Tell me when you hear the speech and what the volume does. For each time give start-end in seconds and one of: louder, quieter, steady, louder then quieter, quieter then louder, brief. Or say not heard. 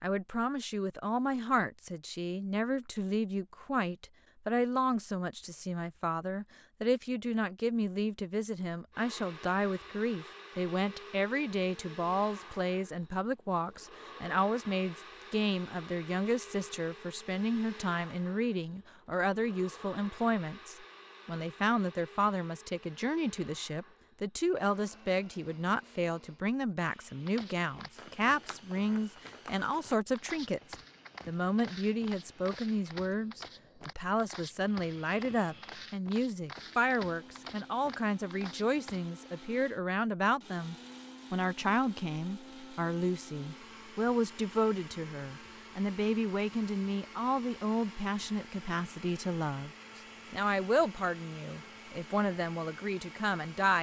0.0-53.7 steady.